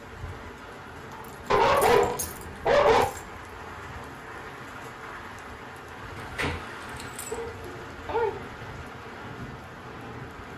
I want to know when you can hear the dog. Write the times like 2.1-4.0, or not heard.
1.5-3.0, 7.3-8.8.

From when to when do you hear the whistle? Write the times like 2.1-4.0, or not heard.
not heard.